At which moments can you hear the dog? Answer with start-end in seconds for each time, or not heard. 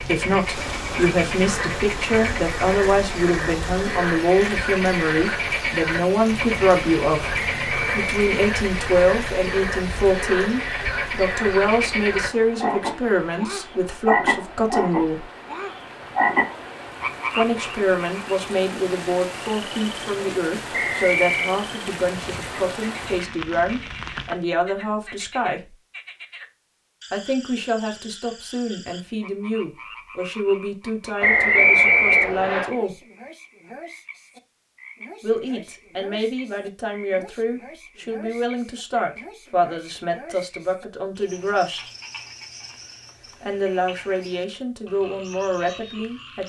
not heard.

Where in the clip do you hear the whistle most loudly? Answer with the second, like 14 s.
32 s.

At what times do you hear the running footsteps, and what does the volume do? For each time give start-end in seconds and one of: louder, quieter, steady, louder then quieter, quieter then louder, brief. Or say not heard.
not heard.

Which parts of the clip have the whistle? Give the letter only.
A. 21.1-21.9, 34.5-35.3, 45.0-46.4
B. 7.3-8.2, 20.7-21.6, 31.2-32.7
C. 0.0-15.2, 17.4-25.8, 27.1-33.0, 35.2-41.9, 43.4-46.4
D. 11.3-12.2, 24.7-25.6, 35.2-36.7
B.